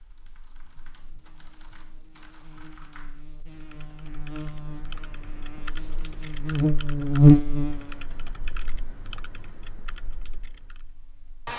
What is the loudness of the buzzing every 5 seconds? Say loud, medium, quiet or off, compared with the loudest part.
quiet, loud, quiet.